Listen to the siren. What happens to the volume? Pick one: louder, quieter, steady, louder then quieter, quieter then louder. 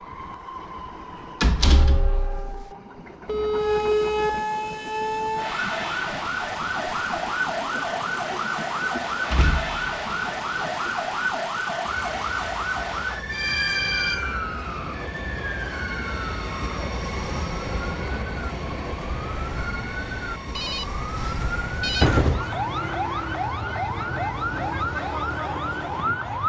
quieter then louder.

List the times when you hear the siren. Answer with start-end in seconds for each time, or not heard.
3.5-26.4.